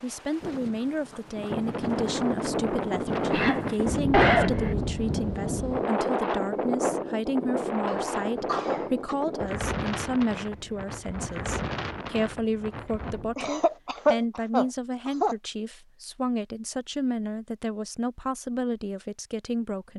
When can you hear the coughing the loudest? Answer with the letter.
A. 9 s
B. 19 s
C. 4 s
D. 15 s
C.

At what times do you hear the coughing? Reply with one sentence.
You can hear the coughing from 3.2 to 4.8 s, from 7.8 to 9.2 s and from 13.3 to 15.3 s.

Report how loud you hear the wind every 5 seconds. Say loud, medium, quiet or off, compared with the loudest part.
loud, loud, medium, off.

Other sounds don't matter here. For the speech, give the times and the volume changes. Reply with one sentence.
You can hear the speech from 0.0 to 19.9 s, at a steady volume.